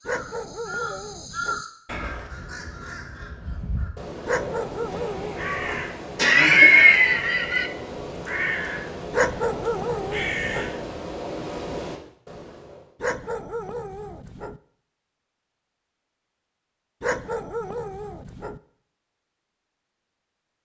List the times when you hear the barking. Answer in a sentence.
The barking can be heard from 0.1 to 1.6 s, from 4.2 to 5.8 s, from 9.1 to 10.7 s, from 13.0 to 14.6 s and from 17.0 to 18.6 s.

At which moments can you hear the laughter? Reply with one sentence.
You can hear the laughter from 6.2 to 7.7 s.